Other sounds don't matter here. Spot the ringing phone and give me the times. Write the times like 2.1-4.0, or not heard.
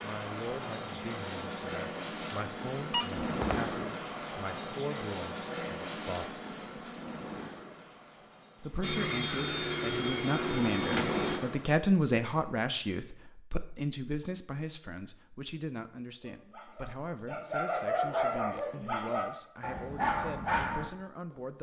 2.9-3.6.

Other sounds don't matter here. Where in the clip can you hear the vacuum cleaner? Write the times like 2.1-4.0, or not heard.
8.8-11.4.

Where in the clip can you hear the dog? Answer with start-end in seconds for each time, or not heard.
16.2-20.9.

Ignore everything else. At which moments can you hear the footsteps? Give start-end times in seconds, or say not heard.
not heard.